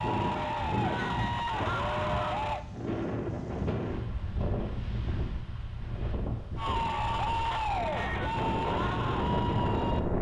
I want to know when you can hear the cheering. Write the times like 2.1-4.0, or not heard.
0.0-2.6, 6.5-10.0.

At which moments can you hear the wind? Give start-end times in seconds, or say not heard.
0.0-10.1.